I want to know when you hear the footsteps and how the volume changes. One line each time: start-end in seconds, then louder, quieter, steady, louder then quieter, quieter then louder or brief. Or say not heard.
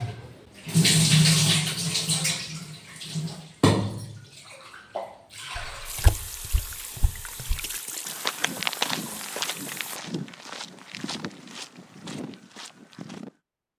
5.5-13.3 louder then quieter.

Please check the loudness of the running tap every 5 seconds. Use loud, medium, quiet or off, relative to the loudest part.
loud, quiet, off.